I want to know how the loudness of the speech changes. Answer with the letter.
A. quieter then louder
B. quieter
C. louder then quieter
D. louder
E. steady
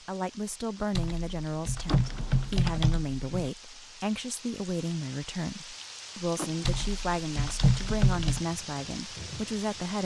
E.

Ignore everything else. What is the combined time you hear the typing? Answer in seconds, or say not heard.
4 s.